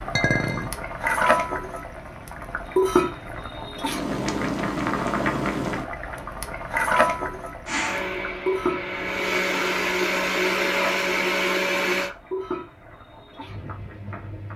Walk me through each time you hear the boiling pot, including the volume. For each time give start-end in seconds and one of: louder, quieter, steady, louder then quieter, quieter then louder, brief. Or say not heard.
0.0-14.5 quieter.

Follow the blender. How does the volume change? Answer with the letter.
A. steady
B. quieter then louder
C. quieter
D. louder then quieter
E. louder
E.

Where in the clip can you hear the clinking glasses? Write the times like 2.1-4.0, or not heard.
0.1-0.7.